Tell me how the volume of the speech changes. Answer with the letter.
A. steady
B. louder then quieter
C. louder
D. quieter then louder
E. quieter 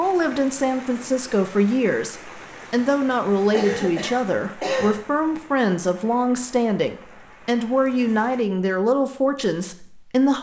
A.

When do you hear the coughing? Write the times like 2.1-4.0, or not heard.
3.5-5.0.